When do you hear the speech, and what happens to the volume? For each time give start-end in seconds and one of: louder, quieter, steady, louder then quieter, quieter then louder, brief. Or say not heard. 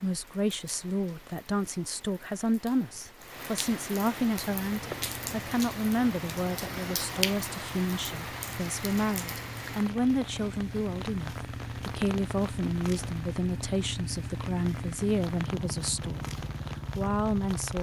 0.0-17.7 steady.